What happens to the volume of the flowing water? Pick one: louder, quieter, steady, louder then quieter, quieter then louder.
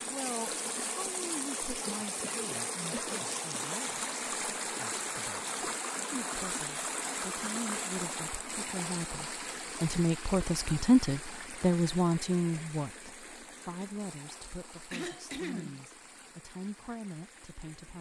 quieter.